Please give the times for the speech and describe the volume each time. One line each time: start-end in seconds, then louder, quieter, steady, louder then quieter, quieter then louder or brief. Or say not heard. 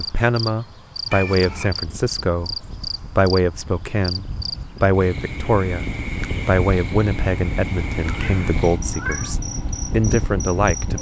0.0-10.9 steady.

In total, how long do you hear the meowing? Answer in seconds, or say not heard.
2 s.